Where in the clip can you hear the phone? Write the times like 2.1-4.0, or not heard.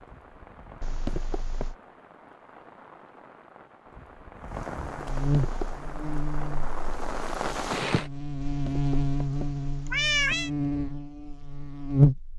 not heard.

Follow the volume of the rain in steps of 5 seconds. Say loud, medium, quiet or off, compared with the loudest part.
medium, loud, off.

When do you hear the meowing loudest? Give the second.
10 s.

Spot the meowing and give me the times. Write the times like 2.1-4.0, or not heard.
0.8-1.8, 5.0-5.8, 8.4-10.5.